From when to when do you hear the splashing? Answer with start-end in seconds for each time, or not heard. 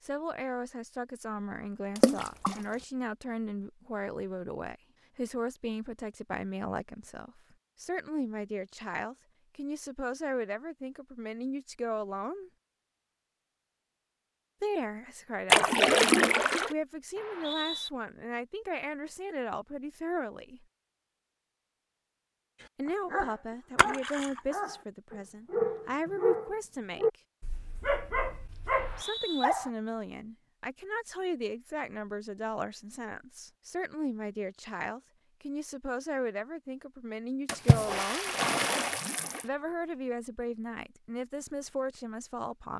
1.9-2.6, 15.5-16.8, 23.8-24.4, 37.5-39.5.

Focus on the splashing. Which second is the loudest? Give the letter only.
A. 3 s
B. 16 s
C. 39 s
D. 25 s
B.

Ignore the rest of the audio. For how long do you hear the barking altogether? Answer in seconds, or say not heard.
7 s.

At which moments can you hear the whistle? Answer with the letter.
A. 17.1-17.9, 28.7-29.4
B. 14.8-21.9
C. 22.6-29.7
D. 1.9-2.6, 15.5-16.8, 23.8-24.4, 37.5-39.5
A.